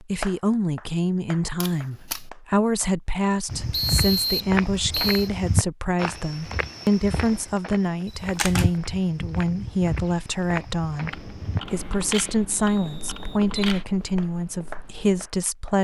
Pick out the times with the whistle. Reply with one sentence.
You can hear the whistle from 3.7 to 5.3 s and from 12.6 to 13.4 s.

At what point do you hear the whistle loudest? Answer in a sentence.
The volume of the whistle peaks at 4 seconds.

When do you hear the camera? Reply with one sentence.
The camera can be heard from 1.6 to 2.2 s, from 8.1 to 8.7 s and from 11.1 to 13.8 s.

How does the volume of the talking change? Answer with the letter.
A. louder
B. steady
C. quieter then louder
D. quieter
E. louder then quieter
B.